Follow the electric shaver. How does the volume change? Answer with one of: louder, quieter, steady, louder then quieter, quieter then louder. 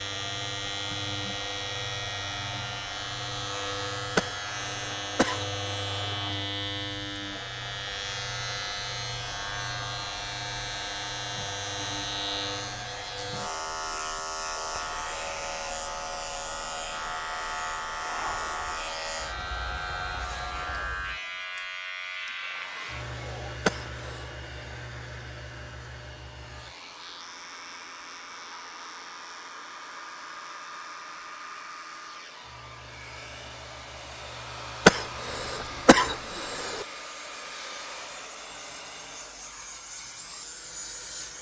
quieter.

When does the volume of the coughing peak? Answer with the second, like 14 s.
35 s.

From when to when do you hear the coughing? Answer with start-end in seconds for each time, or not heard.
4.2-6.2, 23.6-24.2, 34.9-36.9.